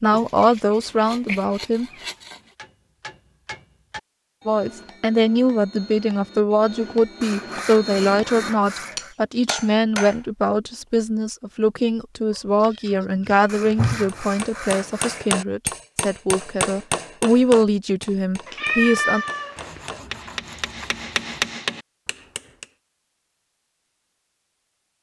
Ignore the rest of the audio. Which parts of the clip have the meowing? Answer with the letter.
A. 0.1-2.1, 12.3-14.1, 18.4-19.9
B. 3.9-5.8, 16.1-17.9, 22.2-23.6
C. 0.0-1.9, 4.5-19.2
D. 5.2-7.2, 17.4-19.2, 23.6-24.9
A.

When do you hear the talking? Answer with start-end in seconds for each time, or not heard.
0.0-1.9, 4.5-19.2.